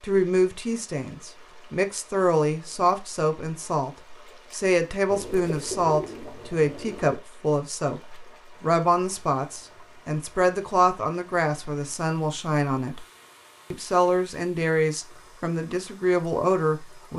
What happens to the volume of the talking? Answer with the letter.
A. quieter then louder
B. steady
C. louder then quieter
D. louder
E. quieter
B.